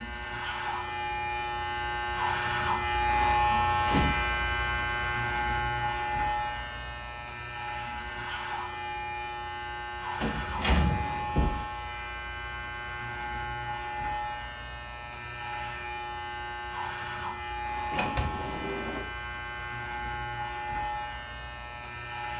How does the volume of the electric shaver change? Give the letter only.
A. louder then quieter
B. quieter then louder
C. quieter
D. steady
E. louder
C.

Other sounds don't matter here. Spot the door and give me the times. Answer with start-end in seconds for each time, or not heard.
3.9-4.4, 10.2-11.7, 17.9-19.1.